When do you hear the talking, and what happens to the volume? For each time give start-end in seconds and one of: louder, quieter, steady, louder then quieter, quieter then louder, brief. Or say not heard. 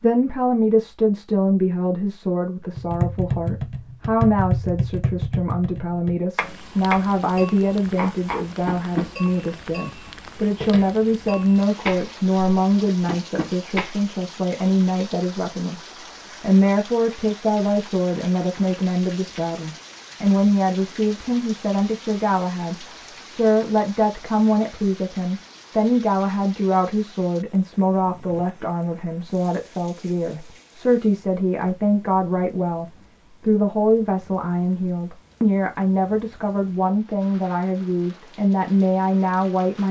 0.0-39.8 steady.